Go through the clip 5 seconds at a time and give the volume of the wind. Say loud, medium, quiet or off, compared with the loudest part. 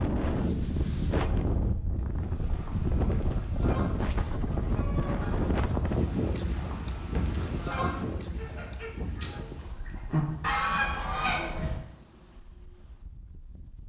loud, loud, quiet.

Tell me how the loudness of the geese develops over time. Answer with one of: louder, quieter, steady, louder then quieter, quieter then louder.
louder.